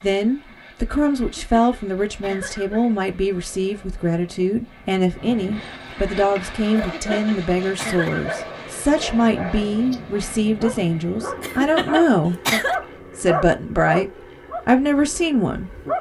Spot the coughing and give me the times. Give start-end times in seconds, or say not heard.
1.1-3.0, 6.8-8.3, 11.4-12.8.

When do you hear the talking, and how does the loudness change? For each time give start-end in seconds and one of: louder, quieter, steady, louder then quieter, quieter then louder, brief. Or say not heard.
0.0-12.4 steady
13.2-15.7 brief.